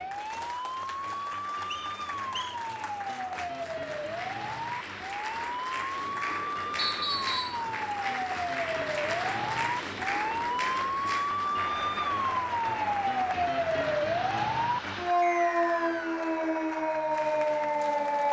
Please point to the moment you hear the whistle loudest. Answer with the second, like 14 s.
7 s.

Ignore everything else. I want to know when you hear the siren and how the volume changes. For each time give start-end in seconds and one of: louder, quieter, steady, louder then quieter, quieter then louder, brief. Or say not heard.
0.0-18.2 louder.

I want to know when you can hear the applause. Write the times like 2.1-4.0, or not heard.
0.0-18.2.